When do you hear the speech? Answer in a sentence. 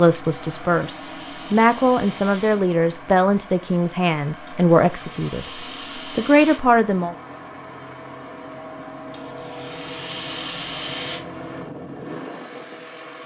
You can hear the speech from 0.0 to 7.2 s.